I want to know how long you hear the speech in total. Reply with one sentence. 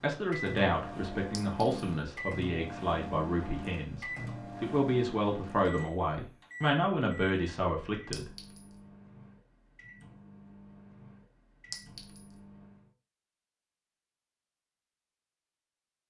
The speech can be heard for 8 seconds in total.